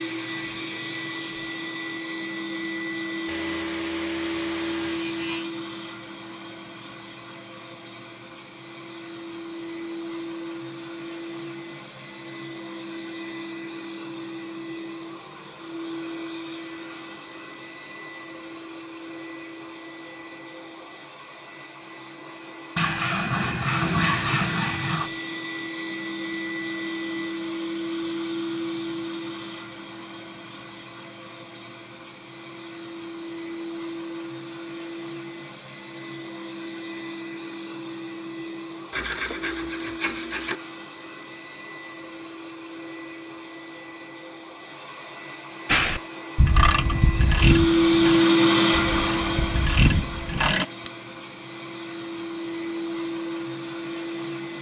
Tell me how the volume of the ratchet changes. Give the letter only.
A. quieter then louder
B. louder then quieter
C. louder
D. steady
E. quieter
A.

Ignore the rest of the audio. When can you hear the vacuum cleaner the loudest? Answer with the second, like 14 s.
48 s.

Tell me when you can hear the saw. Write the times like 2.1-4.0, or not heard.
3.2-5.5, 22.8-25.1, 38.9-40.5.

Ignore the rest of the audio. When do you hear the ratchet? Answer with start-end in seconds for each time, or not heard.
45.6-50.9.